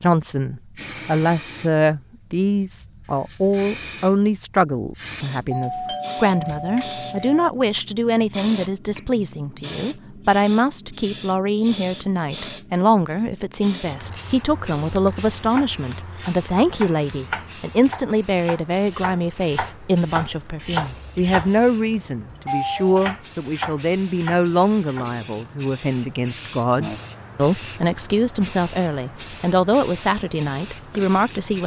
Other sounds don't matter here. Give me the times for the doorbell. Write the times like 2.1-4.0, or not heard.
5.5-7.5, 22.4-22.9.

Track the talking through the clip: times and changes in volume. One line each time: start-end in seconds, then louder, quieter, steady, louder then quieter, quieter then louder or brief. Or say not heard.
0.0-31.6 steady.